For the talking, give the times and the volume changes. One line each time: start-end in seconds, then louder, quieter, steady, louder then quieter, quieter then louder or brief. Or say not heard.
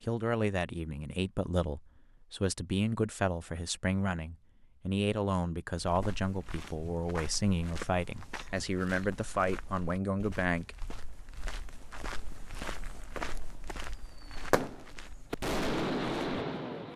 0.0-10.8 steady.